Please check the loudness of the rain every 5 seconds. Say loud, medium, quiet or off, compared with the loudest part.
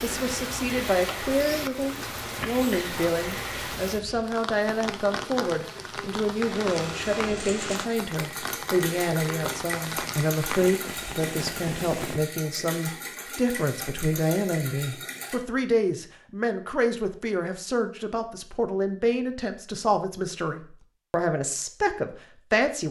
loud, loud, loud, off, off.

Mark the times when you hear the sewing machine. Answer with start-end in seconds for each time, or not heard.
6.4-15.4.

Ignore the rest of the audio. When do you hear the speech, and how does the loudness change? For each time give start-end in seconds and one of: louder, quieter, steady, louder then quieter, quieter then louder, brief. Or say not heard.
0.0-22.8 steady.